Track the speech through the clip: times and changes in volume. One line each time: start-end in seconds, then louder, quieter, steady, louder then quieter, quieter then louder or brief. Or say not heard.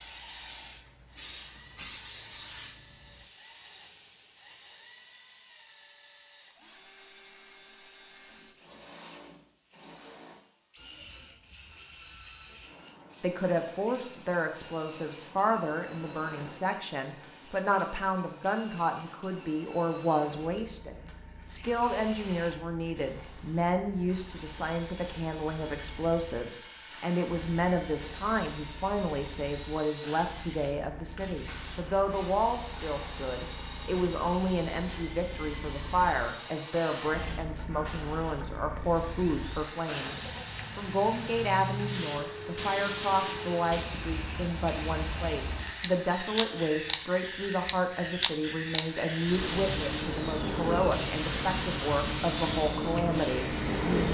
13.2-54.0 steady.